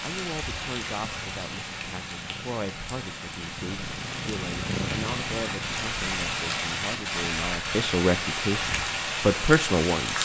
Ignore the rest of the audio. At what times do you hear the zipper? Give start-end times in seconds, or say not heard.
not heard.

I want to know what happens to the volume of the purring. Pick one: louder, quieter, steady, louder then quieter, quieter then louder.
louder then quieter.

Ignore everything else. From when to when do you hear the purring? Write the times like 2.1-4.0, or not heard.
0.0-7.3.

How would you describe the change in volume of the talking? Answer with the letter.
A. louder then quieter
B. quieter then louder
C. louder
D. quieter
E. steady
C.